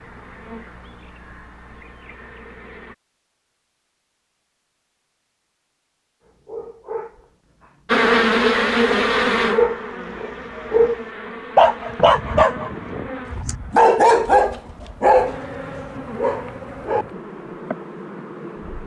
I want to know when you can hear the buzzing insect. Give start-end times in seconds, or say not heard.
0.0-3.0, 7.8-18.8.